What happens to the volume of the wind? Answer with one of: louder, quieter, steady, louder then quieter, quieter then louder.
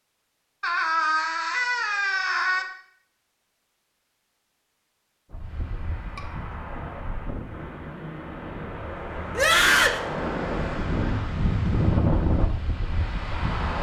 louder.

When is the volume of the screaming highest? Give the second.
10 s.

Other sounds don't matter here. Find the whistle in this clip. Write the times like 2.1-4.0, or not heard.
not heard.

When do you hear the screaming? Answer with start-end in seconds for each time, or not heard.
0.6-2.6, 9.3-10.0.